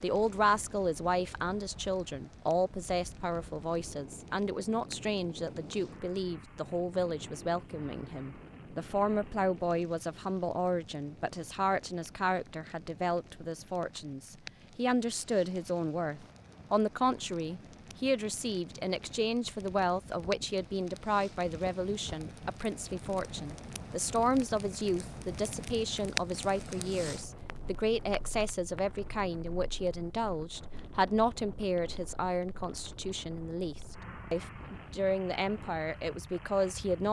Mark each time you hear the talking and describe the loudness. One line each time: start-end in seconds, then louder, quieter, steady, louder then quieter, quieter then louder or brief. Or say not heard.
0.0-37.0 steady.